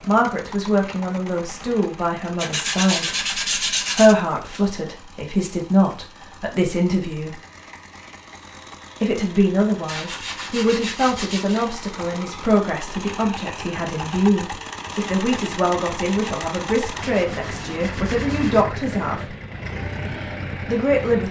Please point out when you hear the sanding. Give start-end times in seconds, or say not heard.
2.4-4.2, 9.8-11.7, 16.9-18.6.